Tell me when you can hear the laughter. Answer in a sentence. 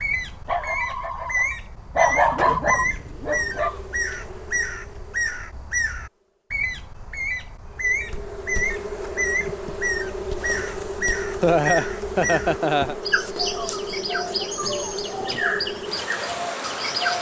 The laughter can be heard from 11.4 to 12.9 s.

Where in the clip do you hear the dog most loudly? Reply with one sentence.
The volume of the dog peaks at 2 seconds.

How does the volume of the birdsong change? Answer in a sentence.
The volume of the birdsong stays about the same.